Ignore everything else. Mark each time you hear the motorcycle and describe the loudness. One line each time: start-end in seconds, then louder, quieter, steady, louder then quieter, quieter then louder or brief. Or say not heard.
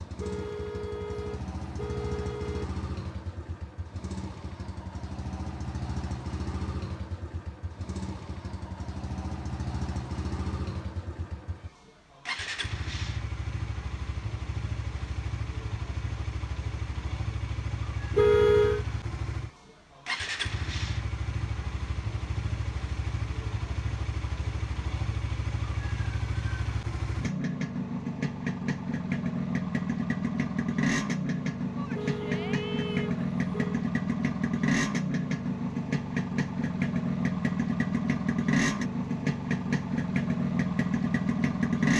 0.0-41.9 louder.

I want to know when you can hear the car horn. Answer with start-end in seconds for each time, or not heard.
0.1-2.6, 18.1-18.9, 31.9-33.9.